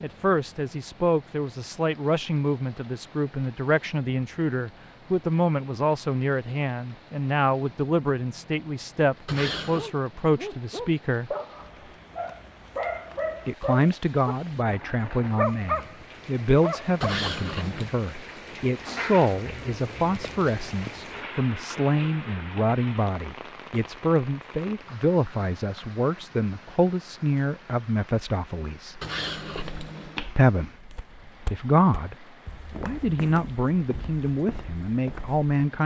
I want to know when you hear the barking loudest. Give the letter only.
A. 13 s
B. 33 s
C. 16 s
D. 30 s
C.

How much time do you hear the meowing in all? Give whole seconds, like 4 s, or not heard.
3 s.